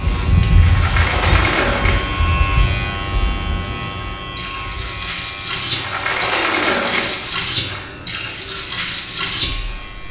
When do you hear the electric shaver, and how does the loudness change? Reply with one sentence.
You can hear the electric shaver from 0.0 to 10.0 s, getting quieter.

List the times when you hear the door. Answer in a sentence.
You can hear the door from 0.6 to 2.3 s and from 5.7 to 7.8 s.